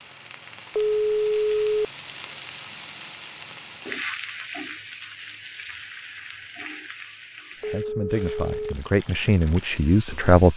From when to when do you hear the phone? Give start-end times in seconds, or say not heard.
0.8-1.9, 7.6-8.8.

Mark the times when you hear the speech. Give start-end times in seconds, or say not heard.
7.6-10.5.